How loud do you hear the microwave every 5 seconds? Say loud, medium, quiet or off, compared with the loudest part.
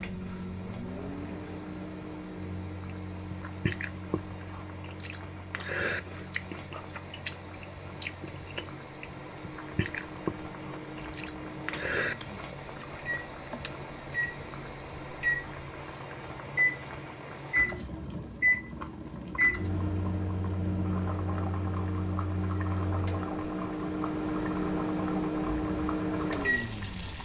medium, quiet, medium, loud, loud, loud.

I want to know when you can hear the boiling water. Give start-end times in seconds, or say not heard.
0.0-27.2.